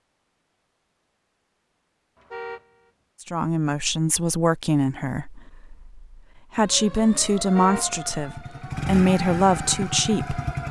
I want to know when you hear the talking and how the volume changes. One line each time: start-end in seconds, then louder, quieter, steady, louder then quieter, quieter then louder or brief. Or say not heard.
3.2-10.4 quieter then louder.